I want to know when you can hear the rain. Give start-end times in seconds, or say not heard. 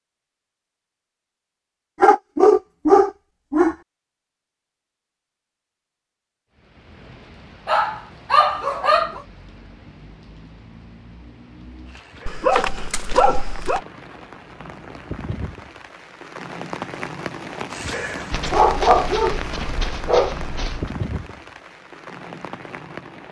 6.5-23.2.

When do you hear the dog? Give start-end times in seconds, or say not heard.
2.0-3.8, 7.7-9.2, 12.2-13.8, 18.3-20.9.